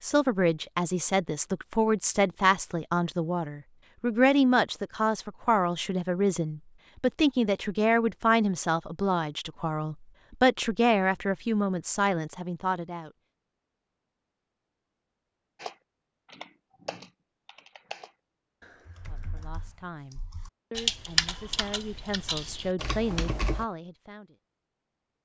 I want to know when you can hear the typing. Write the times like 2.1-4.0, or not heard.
15.6-23.6.